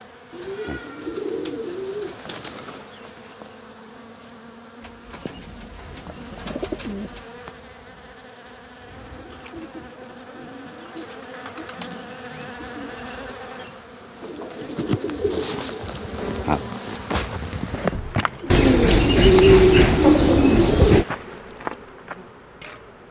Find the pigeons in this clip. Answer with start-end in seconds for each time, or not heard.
0.3-2.9, 4.8-7.3, 9.3-11.9, 14.2-16.8, 18.5-21.1.